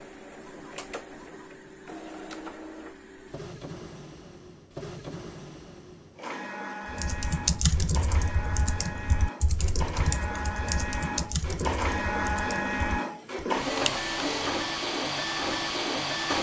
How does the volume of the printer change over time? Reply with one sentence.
The volume of the printer goes up.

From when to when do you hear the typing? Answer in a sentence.
You can hear the typing from 6.8 to 13.5 s.